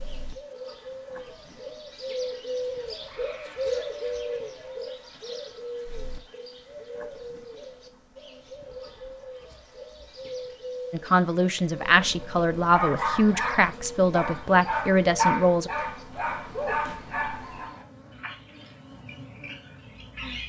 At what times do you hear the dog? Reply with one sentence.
The dog can be heard from 12.7 to 17.7 s.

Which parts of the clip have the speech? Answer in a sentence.
The speech can be heard from 10.9 to 15.7 s.